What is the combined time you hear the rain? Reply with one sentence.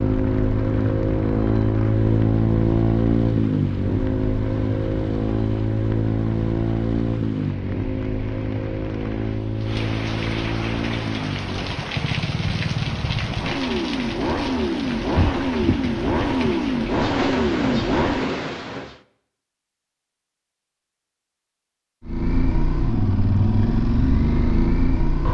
You can hear the rain for 19 seconds altogether.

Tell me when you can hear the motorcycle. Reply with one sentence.
The motorcycle can be heard from 0.0 to 18.4 s and from 22.0 to 25.3 s.